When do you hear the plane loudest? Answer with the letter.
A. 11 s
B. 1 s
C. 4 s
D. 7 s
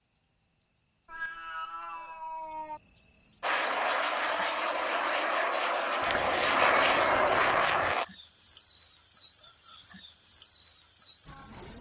D.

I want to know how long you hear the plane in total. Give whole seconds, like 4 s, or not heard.
5 s.